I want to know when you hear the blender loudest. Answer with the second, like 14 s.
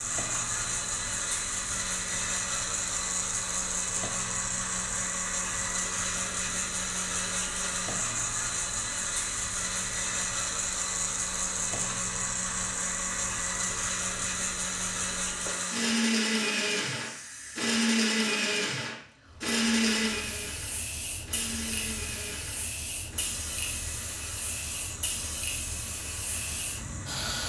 18 s.